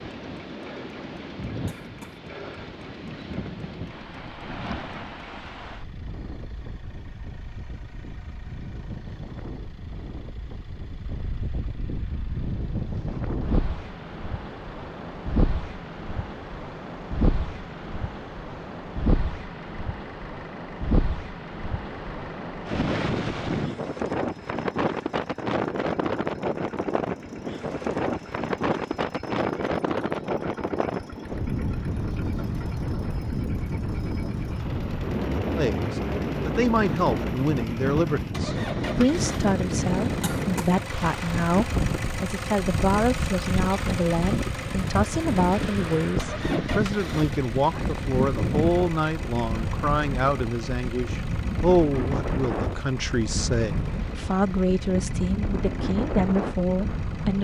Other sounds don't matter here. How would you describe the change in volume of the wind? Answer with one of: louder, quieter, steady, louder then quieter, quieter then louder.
louder.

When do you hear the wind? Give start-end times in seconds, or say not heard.
0.0-57.3.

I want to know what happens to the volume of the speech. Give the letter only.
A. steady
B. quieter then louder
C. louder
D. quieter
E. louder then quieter
A.